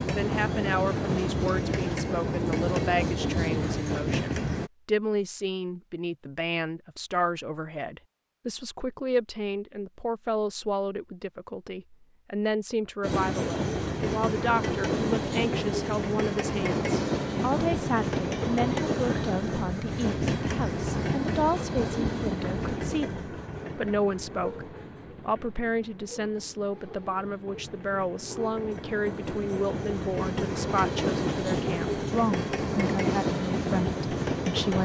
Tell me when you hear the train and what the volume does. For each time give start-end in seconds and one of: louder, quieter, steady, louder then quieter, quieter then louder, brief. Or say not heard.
0.0-4.7 steady
13.0-34.8 quieter then louder.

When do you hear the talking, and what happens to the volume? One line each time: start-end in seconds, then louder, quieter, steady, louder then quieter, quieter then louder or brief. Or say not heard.
0.0-34.8 steady.